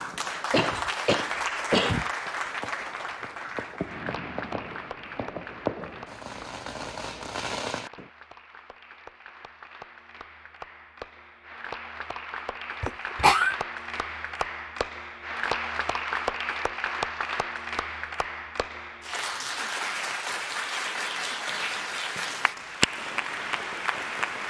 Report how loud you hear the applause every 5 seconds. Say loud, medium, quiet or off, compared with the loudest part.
loud, quiet, medium, loud, loud.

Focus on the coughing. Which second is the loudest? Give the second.
13 s.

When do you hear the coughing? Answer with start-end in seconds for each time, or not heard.
0.5-2.1, 12.8-13.6.